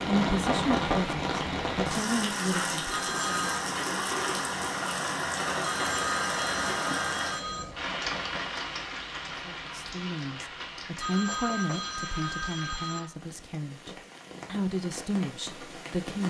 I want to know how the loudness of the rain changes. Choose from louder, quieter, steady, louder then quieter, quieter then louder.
quieter.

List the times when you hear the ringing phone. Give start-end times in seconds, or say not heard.
2.9-3.6, 5.6-7.7, 11.0-13.0.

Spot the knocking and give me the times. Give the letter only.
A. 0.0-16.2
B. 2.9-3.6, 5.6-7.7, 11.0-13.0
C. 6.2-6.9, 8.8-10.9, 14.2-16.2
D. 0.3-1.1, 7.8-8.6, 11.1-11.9
D.